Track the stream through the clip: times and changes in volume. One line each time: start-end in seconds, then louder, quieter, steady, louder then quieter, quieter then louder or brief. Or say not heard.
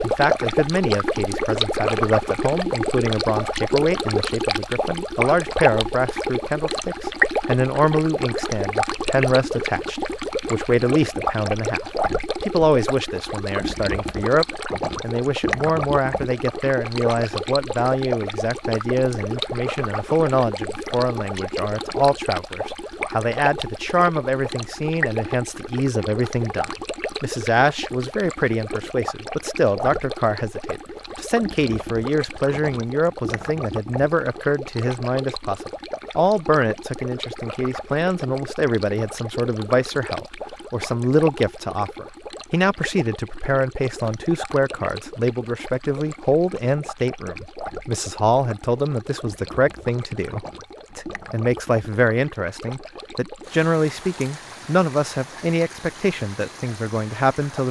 0.0-57.6 quieter.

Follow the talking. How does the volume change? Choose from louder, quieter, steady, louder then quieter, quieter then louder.
steady.